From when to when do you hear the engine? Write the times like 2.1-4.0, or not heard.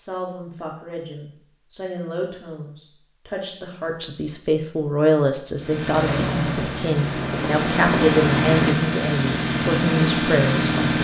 5.6-11.0.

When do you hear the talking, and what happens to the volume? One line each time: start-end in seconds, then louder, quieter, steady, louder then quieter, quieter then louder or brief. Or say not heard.
0.0-10.8 louder.